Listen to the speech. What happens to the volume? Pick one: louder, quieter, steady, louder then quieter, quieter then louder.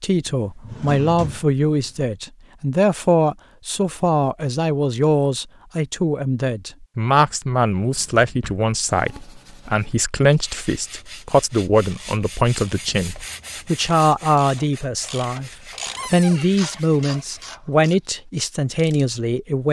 steady.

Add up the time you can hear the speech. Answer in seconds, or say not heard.
19 s.